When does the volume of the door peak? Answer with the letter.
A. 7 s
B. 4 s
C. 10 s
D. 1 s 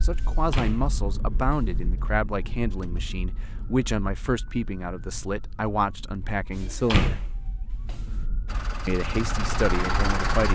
A.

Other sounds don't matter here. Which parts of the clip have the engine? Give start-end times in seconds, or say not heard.
8.4-10.5.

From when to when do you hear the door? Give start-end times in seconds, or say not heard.
0.2-1.8, 6.6-8.2.